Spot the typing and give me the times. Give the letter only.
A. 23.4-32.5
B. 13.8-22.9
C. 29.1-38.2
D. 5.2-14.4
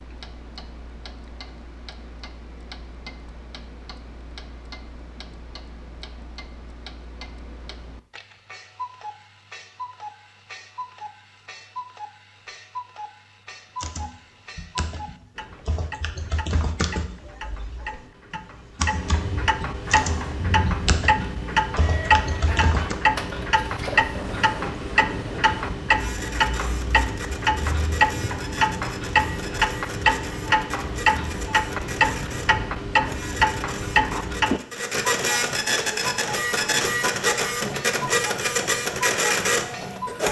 B.